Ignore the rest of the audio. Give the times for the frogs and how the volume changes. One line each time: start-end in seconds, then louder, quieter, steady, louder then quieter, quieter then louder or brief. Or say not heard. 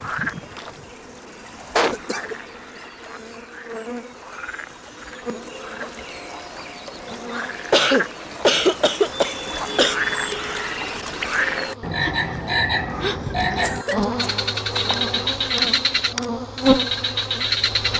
0.0-17.9 louder.